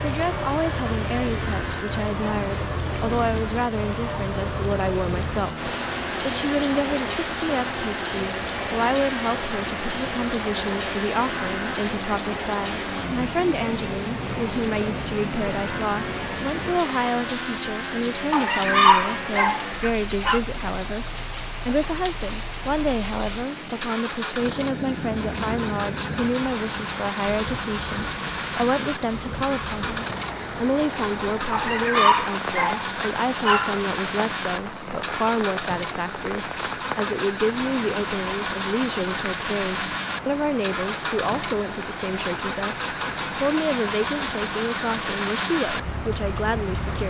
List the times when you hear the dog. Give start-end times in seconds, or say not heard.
18.3-20.4, 31.5-33.8.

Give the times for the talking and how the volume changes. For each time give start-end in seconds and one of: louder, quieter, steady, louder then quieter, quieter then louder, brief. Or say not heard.
0.0-47.0 steady.